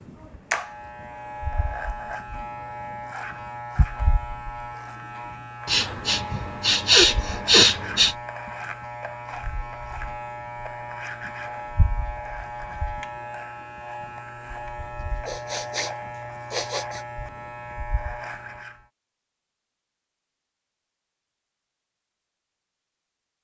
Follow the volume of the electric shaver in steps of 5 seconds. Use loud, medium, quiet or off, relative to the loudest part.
loud, loud, loud, loud, off.